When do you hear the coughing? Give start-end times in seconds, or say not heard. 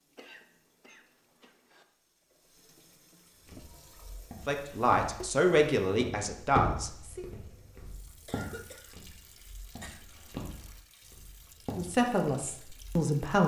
0.1-1.9, 8.2-10.1.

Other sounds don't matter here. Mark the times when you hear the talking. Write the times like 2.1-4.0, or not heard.
4.5-7.2, 11.8-13.4.